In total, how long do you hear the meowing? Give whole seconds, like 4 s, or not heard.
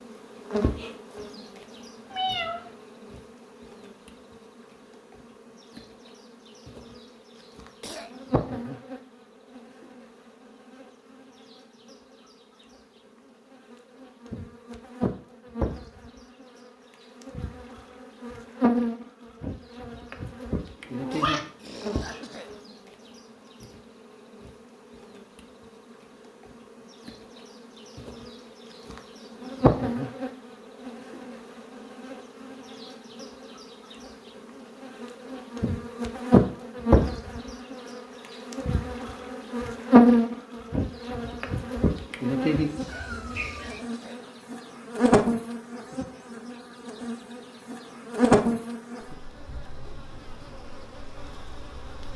3 s.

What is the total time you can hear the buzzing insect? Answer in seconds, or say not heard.
52 s.